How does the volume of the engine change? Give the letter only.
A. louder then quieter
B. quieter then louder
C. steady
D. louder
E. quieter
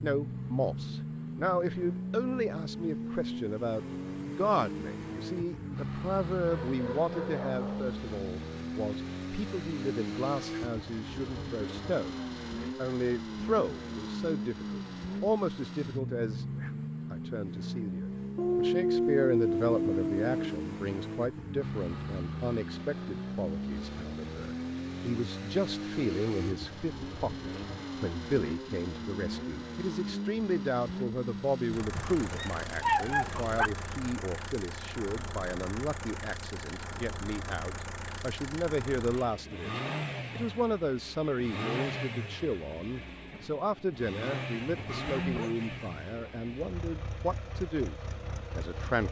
C.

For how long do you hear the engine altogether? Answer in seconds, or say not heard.
49 s.